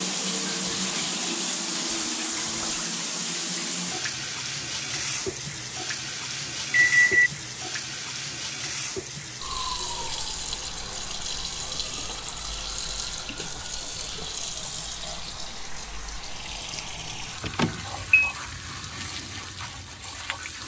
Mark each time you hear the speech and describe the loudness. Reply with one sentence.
You can't hear the speech here.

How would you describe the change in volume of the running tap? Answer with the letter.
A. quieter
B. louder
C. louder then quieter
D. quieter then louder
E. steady
A.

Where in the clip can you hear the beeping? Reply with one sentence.
You can hear the beeping from 6.7 to 7.3 s and from 17.4 to 18.4 s.